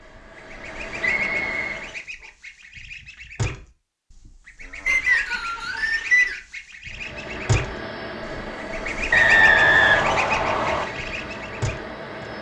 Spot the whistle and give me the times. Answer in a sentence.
You can hear the whistle from 0.9 to 1.8 s, from 4.8 to 6.3 s and from 9.1 to 10.8 s.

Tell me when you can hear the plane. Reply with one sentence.
The plane can be heard from 0.0 to 2.0 s and from 6.8 to 12.3 s.